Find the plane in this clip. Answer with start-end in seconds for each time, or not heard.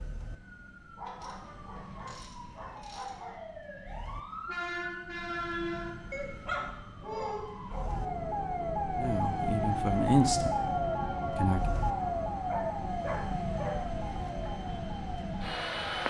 0.0-16.0.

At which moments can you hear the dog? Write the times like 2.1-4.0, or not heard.
0.9-3.4, 6.1-7.9, 12.4-13.8.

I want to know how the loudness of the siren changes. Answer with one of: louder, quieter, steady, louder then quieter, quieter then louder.
louder then quieter.